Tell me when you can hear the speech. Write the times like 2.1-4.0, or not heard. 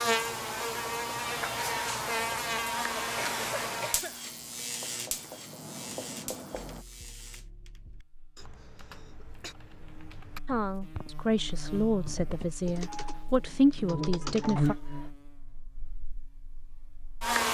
10.4-14.8.